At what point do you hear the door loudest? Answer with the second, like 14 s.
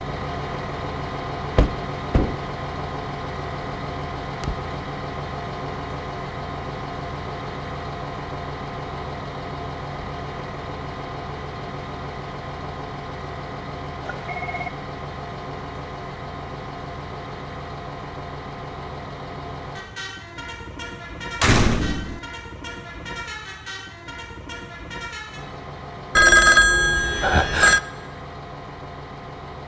22 s.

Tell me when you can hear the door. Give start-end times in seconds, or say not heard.
1.6-2.4, 21.4-22.2.